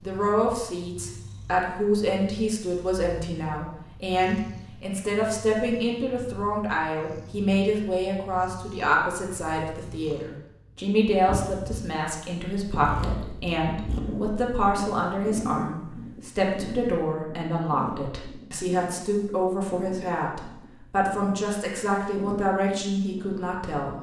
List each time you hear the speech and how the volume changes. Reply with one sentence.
You can hear the speech from 0.0 to 23.9 s, at a steady volume.